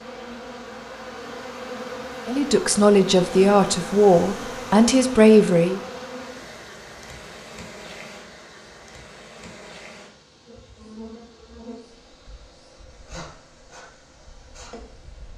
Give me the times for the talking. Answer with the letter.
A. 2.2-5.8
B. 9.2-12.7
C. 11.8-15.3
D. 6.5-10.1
A.